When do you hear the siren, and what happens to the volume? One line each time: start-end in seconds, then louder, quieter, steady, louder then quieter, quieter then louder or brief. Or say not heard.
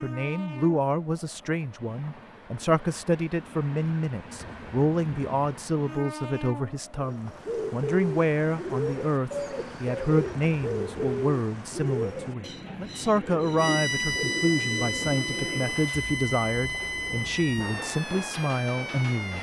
13.6-19.3 quieter.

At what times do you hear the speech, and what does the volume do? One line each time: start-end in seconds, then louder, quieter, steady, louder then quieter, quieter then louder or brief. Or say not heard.
0.0-19.3 steady.